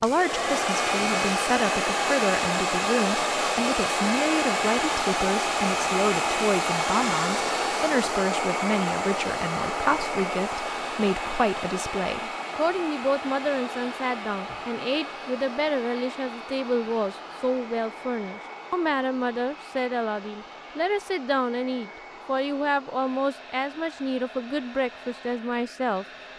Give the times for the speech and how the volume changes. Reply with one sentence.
You can hear the speech from 0.0 to 26.1 s, at a steady volume.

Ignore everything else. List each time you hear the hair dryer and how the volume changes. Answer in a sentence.
The hair dryer can be heard from 0.0 to 26.3 s, getting quieter.